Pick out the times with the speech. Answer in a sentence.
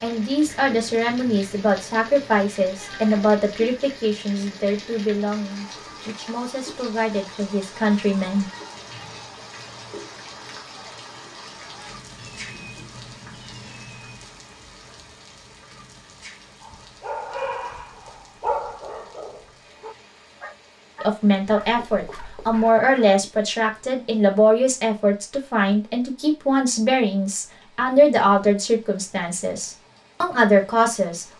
The speech can be heard from 0.0 to 8.4 s and from 21.0 to 31.2 s.